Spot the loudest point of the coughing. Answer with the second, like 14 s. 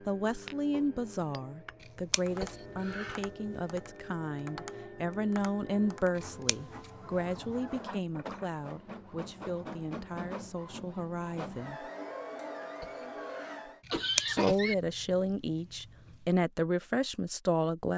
14 s.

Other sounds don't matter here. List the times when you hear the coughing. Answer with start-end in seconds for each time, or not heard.
2.4-3.3, 12.8-14.8.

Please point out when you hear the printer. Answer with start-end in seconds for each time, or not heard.
0.0-13.8.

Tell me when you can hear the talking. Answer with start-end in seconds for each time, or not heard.
0.1-11.9, 14.2-17.9.